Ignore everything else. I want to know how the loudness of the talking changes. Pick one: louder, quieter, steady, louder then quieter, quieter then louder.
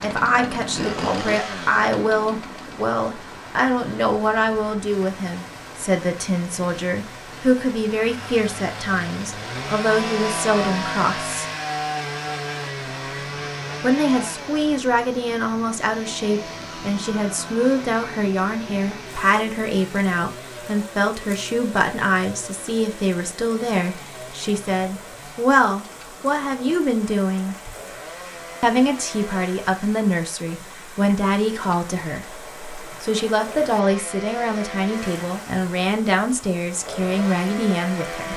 steady.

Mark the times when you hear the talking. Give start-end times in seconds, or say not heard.
0.0-11.4, 13.8-27.6, 28.6-38.3.